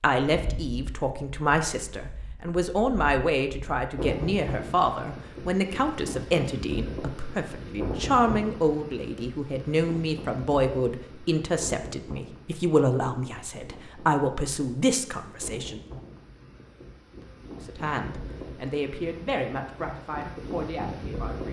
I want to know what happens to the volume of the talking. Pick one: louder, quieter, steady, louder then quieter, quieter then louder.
quieter.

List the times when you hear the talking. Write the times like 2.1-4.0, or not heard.
0.0-15.8, 17.6-21.4.